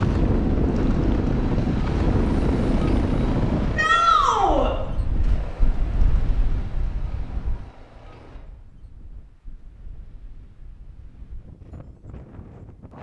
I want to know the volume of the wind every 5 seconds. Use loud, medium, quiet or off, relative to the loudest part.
loud, quiet, quiet.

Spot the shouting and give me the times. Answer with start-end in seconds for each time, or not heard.
3.8-4.7.